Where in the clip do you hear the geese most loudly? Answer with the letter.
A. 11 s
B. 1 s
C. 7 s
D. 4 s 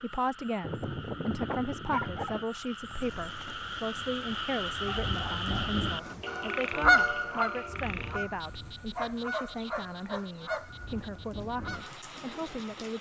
C.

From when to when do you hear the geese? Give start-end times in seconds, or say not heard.
6.2-11.9.